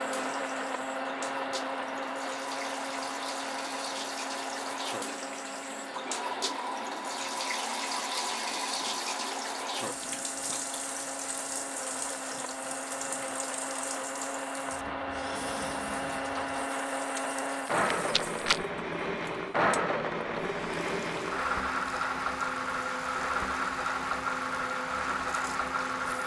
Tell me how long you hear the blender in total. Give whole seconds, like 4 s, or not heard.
26 s.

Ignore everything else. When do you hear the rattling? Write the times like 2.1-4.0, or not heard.
17.6-18.6.